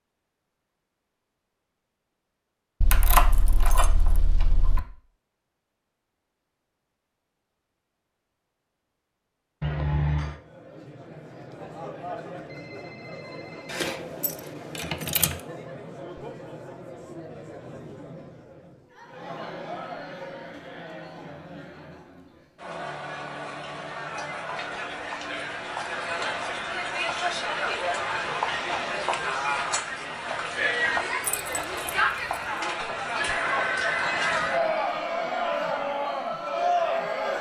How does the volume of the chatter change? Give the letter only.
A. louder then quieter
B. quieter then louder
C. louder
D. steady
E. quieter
C.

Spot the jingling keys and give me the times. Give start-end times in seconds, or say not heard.
2.8-4.8, 13.7-15.3, 31.2-32.5.